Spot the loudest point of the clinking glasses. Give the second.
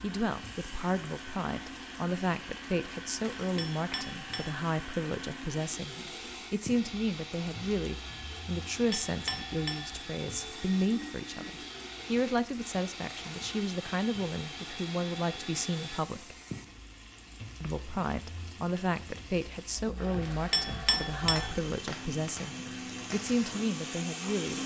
21 s.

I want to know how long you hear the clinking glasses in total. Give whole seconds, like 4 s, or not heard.
3 s.